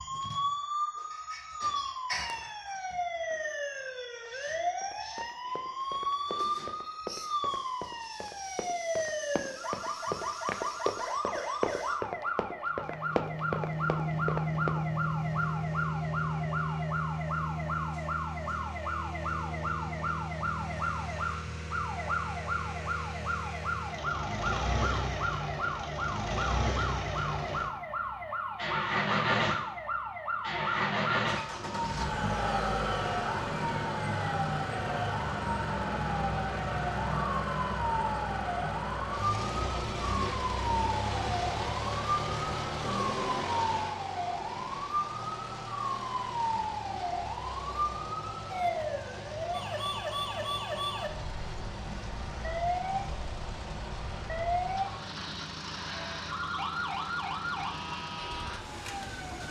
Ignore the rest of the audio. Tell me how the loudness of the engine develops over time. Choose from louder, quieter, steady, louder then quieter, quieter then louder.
quieter.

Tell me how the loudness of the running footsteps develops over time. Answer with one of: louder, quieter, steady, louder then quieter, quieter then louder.
louder.